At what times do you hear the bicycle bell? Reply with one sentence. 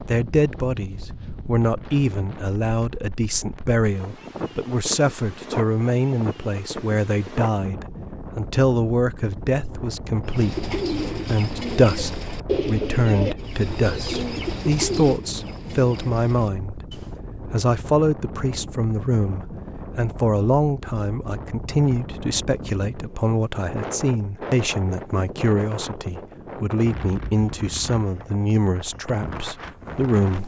The bicycle bell can't be heard in this clip.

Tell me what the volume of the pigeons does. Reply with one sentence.
The volume of the pigeons goes down.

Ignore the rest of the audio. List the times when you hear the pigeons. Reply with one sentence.
You can hear the pigeons from 10.2 to 17.2 s.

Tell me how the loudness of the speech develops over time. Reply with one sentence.
The loudness of the speech stays about the same.